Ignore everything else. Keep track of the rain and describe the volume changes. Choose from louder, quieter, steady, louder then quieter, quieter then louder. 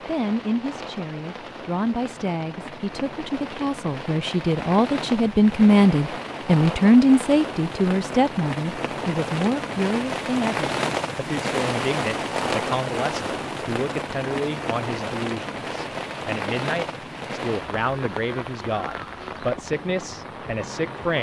louder then quieter.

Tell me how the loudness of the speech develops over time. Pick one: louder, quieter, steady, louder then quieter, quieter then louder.
louder then quieter.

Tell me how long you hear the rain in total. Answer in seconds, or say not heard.
21 s.